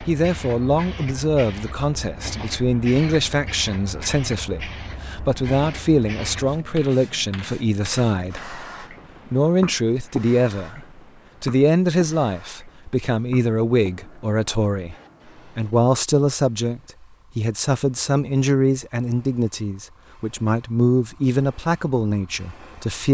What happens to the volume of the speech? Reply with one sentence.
The loudness of the speech stays about the same.